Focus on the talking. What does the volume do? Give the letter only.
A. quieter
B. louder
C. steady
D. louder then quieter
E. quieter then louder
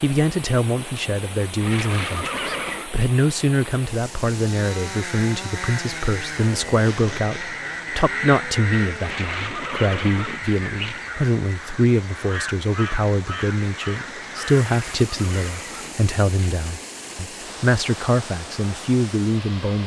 C.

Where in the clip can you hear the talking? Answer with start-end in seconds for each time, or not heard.
0.0-19.8.